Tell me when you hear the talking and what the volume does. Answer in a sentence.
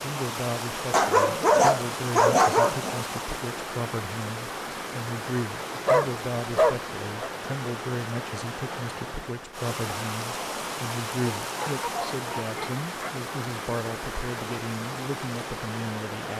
The talking can be heard from 0.0 to 16.3 s, at a steady volume.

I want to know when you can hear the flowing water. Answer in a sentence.
You can hear the flowing water from 0.0 to 16.3 s.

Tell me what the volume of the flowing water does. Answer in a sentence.
The loudness of the flowing water stays about the same.